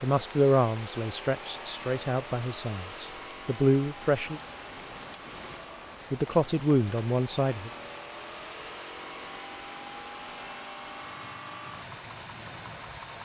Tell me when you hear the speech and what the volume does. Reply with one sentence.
The speech can be heard from 0.0 to 4.4 s, getting quieter then louder; and briefly from 6.1 to 7.7 s.